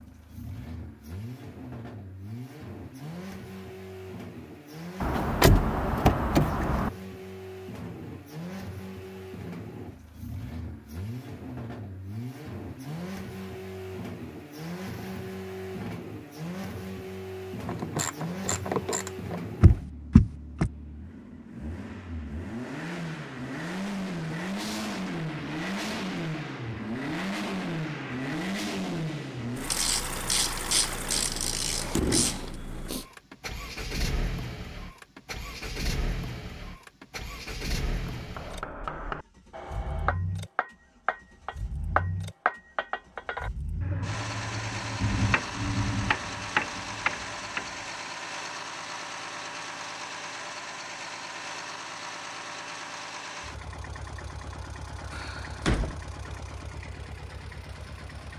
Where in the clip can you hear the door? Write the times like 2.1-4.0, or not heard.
5.0-6.9, 19.6-20.7, 55.1-56.0.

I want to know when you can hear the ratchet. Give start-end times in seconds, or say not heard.
17.6-19.4, 29.6-32.5.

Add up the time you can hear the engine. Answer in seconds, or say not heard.
58 s.